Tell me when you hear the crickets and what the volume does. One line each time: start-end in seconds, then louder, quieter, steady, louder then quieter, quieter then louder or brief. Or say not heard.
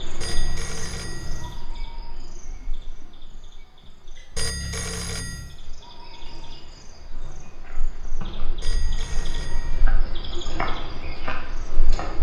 0.0-12.1 quieter then louder.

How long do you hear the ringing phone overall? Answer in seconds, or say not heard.
4 s.